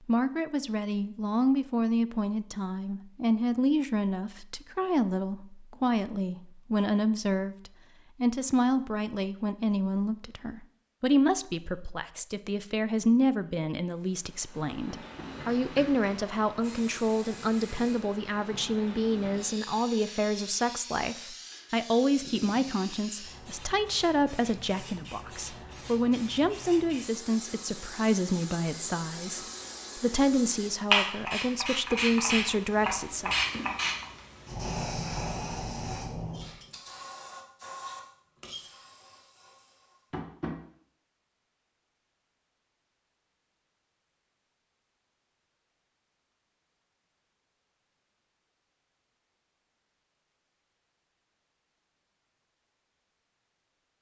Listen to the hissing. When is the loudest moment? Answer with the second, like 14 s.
31 s.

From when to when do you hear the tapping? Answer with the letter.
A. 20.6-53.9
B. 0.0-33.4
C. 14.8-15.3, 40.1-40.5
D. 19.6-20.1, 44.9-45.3
C.